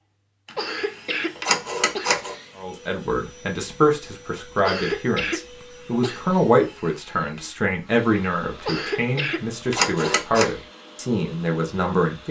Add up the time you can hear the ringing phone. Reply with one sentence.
You can hear the ringing phone for 2 seconds altogether.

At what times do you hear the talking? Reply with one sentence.
The talking can be heard from 2.5 to 12.2 s.